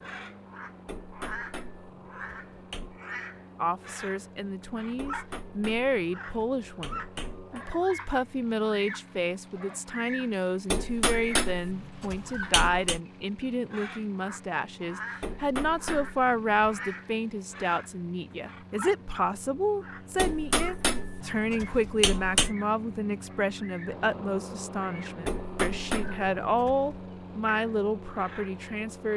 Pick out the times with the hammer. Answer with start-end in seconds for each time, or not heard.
0.8-3.0, 5.0-7.7, 10.7-13.0, 15.2-16.9, 20.1-22.6, 25.2-27.0.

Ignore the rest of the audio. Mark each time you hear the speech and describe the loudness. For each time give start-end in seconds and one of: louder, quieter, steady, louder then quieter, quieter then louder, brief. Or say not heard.
3.5-29.1 steady.